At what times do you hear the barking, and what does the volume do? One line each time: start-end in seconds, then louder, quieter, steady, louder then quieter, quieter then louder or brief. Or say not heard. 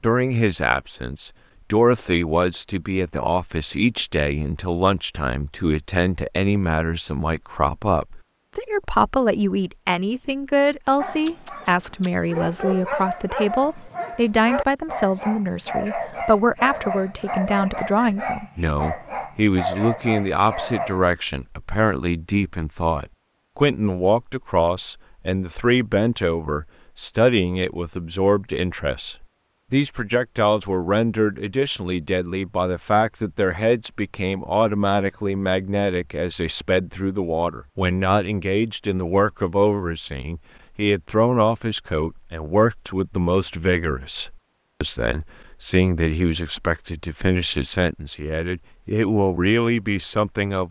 11.0-21.1 steady.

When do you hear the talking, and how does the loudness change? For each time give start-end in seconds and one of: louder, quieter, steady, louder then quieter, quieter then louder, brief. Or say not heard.
0.0-50.6 steady.